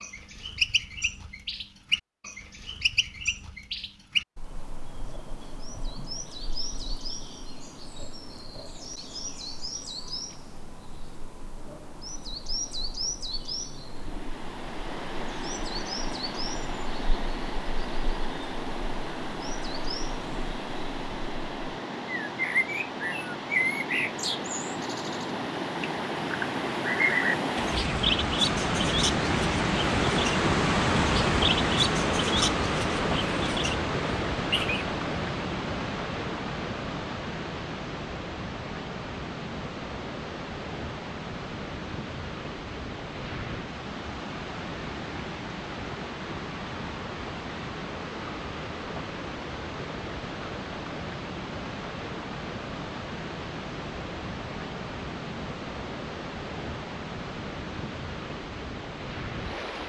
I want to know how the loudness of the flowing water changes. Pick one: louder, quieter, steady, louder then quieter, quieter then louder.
louder then quieter.